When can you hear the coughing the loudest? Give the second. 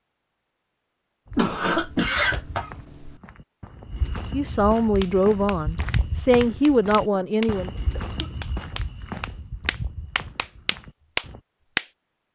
2 s.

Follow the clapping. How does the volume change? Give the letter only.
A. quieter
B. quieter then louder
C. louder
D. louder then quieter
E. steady
C.